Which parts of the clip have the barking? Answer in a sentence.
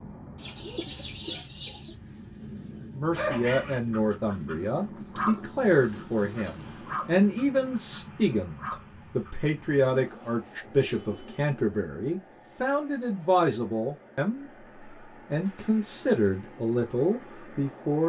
The barking can be heard from 3.1 to 9.4 s.